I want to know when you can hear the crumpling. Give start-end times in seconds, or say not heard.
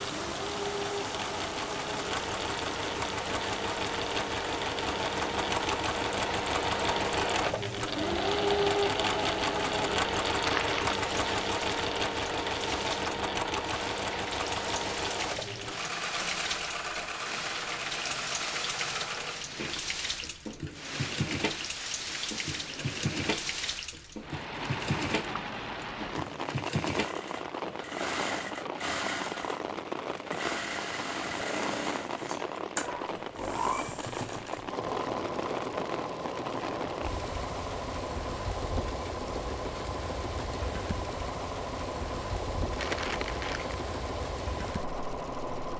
10.2-11.1, 42.8-43.9.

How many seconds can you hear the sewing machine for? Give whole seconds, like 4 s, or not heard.
46 s.